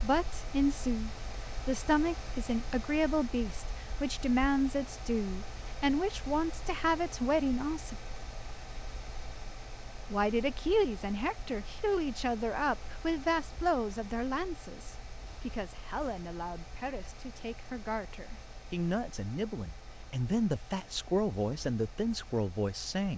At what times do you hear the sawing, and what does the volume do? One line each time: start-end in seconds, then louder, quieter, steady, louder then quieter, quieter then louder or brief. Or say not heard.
not heard.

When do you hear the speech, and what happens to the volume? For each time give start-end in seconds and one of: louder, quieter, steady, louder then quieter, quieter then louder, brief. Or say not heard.
0.0-8.0 steady
10.1-23.1 quieter then louder.